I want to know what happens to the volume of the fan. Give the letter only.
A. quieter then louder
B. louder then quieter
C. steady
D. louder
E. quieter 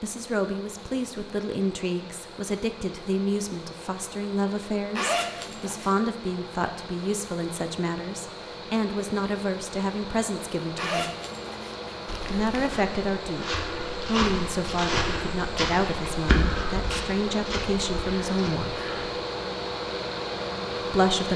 D.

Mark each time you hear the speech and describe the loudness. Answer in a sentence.
You can hear the speech from 0.0 to 11.1 s, at a steady volume; from 12.3 to 18.9 s, at a steady volume; and briefly from 20.9 to 21.3 s.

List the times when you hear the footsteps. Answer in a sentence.
You can hear the footsteps from 12.1 to 19.1 s.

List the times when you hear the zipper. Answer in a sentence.
The zipper can be heard from 5.0 to 6.0 s and from 10.8 to 12.7 s.